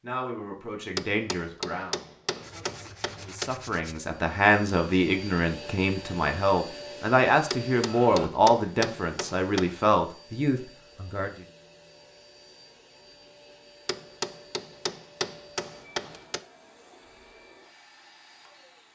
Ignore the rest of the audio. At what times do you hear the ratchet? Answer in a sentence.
The ratchet can't be heard in this clip.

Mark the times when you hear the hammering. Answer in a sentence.
The hammering can be heard from 0.9 to 3.5 s, from 7.5 to 9.8 s and from 13.8 to 16.4 s.